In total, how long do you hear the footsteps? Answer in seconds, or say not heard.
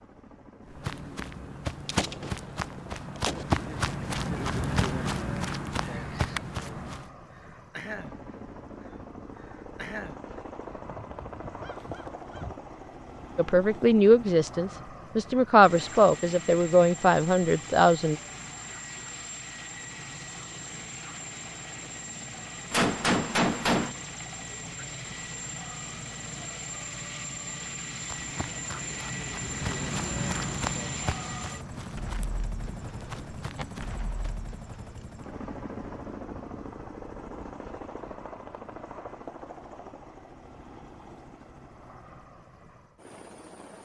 13 s.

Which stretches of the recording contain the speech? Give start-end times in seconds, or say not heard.
13.3-18.1.